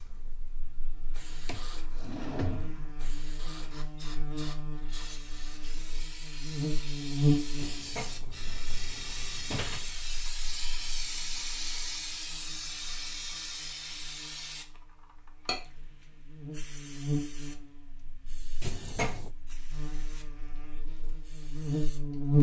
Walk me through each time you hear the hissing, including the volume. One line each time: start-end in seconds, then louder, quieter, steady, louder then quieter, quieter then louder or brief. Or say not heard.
0.0-22.1 louder then quieter.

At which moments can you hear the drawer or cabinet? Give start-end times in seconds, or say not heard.
1.4-2.9, 7.5-9.9, 18.6-19.3.